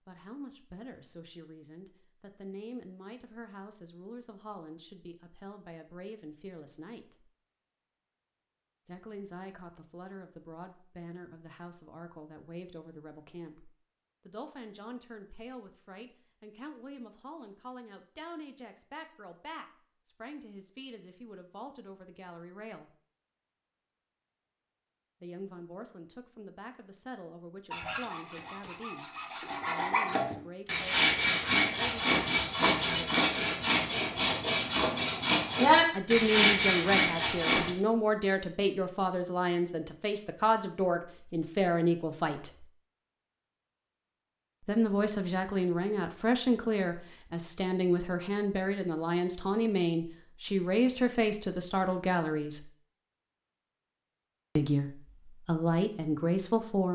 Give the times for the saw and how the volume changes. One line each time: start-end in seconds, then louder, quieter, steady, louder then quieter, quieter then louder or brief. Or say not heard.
27.7-37.7 louder.